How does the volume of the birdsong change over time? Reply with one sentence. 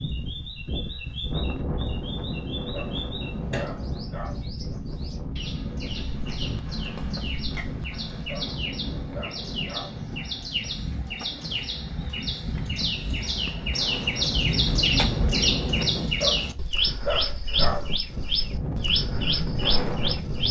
The loudness of the birdsong goes up.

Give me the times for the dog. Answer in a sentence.
The dog can be heard from 2.7 to 4.4 s, from 8.2 to 9.9 s and from 16.2 to 17.9 s.